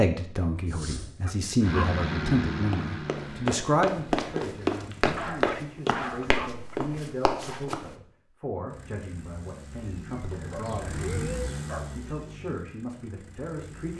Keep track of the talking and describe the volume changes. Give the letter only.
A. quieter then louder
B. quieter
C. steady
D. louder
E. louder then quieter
B.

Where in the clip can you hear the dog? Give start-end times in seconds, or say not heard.
0.7-1.9, 5.0-6.8, 10.3-11.9.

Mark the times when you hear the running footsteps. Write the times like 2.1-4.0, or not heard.
2.5-7.9.